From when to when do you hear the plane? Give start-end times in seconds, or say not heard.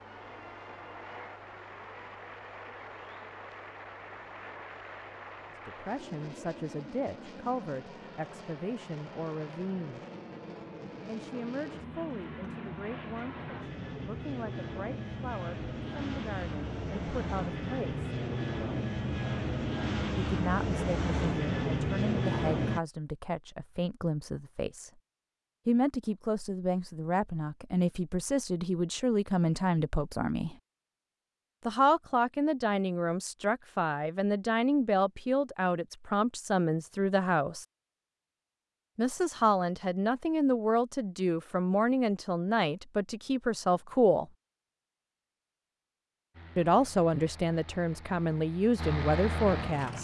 0.0-22.8, 46.3-50.0.